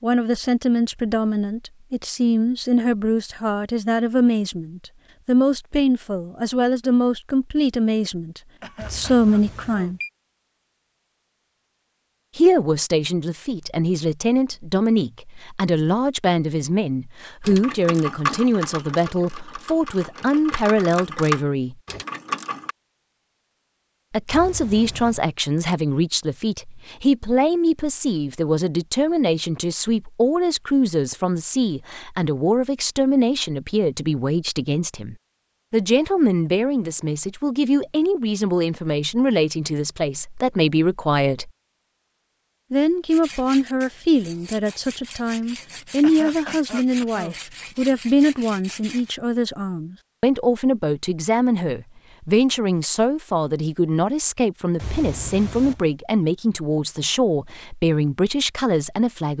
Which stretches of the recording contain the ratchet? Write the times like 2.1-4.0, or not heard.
17.4-22.8.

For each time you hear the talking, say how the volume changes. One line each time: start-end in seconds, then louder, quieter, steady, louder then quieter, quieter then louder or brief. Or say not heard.
0.0-10.0 steady
12.3-21.8 steady
24.1-41.5 steady
42.7-59.3 steady.